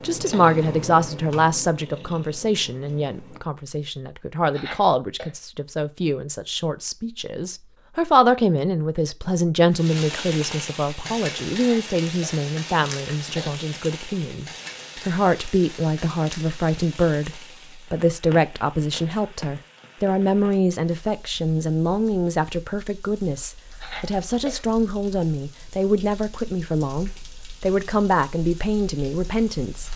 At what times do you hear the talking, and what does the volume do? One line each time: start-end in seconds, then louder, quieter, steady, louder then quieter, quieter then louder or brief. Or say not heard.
0.0-29.9 steady.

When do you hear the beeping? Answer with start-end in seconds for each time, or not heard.
not heard.